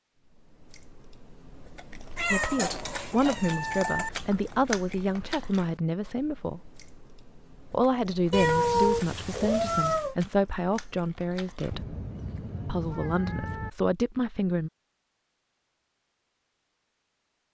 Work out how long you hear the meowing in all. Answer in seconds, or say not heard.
6 s.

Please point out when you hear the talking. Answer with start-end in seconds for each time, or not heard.
2.3-6.7, 7.7-11.9, 12.7-14.7.